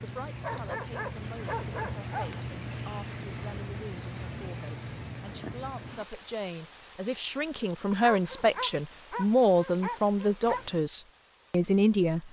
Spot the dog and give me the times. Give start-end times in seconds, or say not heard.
0.4-2.4, 7.9-10.7.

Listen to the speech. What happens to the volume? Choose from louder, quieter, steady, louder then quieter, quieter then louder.
louder.